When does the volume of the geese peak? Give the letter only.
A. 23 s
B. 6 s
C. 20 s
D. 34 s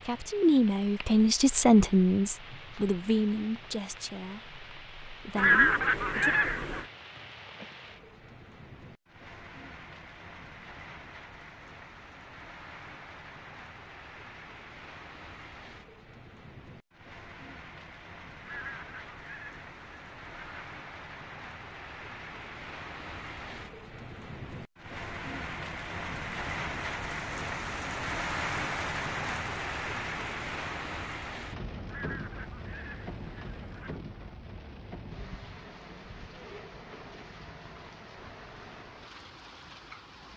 B.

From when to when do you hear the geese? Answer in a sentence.
You can hear the geese from 5.3 to 6.8 s, from 18.4 to 20.7 s and from 31.9 to 34.0 s.